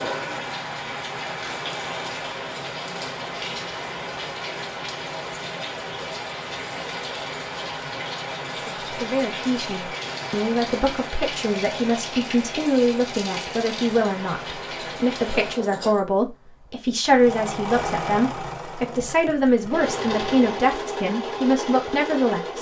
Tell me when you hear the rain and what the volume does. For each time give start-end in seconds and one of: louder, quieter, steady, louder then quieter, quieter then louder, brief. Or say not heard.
0.0-15.6 steady.